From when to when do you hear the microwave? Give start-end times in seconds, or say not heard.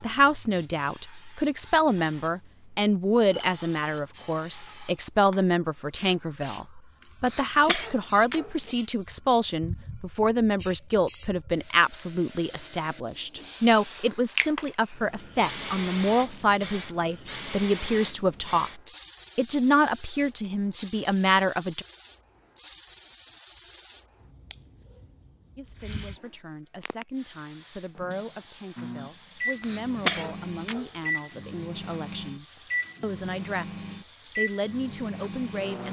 28.8-35.8.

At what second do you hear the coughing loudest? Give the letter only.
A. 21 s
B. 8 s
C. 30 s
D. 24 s
C.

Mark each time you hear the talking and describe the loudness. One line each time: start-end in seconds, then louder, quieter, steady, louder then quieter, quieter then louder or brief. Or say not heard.
0.0-21.9 steady
25.6-35.8 louder.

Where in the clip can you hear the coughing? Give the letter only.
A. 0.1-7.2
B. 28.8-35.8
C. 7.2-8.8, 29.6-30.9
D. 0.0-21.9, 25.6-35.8
C.